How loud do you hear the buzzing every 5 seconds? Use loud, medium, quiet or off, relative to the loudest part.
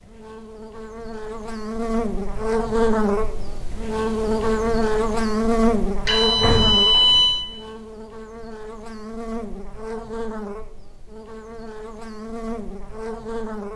loud, loud, medium.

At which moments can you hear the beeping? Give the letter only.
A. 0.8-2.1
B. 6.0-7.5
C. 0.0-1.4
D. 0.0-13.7
B.